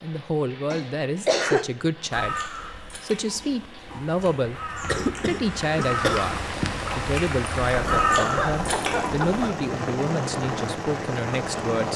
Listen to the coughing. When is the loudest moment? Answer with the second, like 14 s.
1 s.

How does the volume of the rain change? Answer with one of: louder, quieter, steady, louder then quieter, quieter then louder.
louder.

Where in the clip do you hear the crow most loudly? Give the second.
8 s.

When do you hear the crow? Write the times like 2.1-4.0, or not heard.
2.1-9.2.